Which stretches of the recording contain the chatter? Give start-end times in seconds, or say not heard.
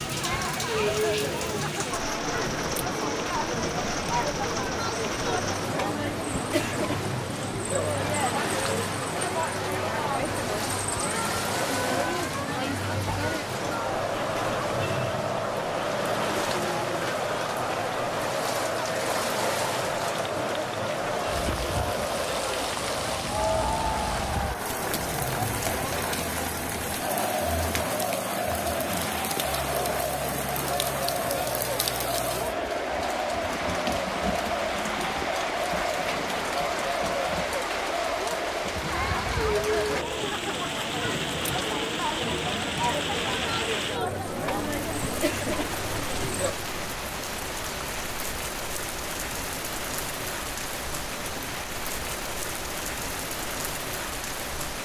0.0-46.5.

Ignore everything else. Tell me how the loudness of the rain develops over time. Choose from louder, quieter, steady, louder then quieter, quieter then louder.
steady.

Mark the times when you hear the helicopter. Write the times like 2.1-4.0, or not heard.
not heard.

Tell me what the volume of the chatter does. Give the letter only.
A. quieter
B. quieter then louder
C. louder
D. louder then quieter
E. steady
E.